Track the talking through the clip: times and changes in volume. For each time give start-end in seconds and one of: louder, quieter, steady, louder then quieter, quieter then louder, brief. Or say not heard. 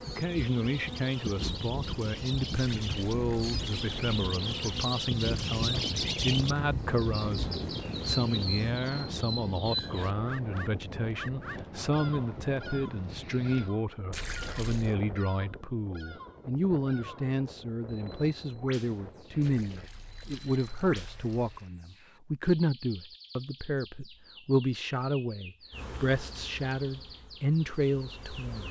0.1-28.6 steady.